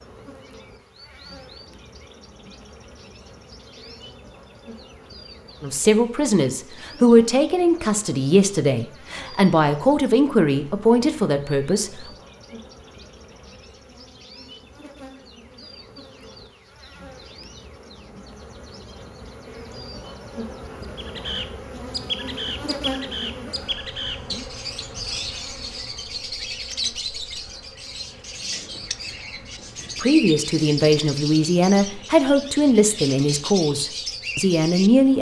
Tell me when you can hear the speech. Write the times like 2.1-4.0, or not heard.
5.6-12.1, 30.0-35.1.